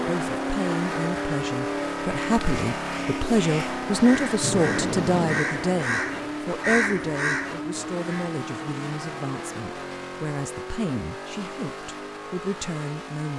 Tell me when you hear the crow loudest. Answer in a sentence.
The loudest moment of the crow is at 7 seconds.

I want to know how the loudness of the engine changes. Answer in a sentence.
The loudness of the engine goes down.